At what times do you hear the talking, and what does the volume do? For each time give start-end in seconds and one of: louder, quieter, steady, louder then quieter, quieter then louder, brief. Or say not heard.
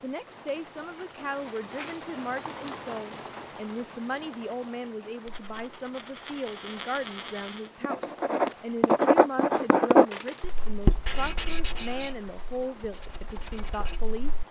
0.0-14.3 steady.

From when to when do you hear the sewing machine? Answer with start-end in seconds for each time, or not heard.
not heard.